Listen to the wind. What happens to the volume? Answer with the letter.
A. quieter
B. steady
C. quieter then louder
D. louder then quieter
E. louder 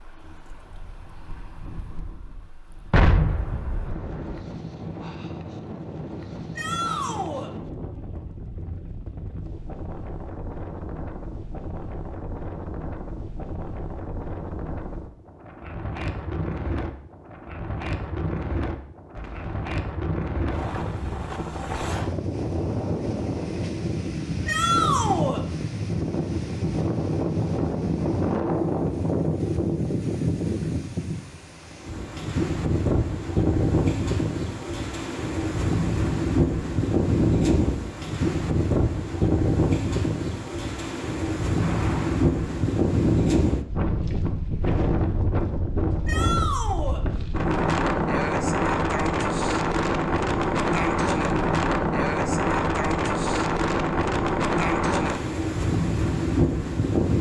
E.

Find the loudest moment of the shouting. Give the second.
25 s.